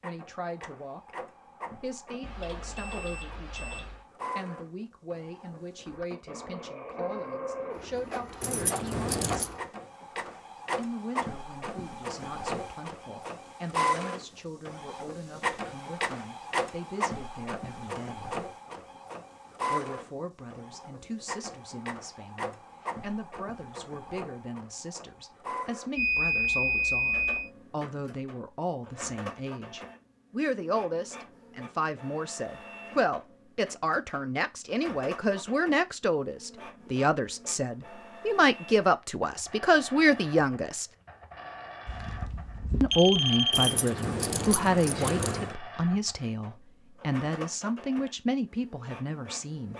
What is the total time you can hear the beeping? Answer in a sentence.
You can hear the beeping for 5 seconds altogether.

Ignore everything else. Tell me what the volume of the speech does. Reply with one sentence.
The loudness of the speech goes up.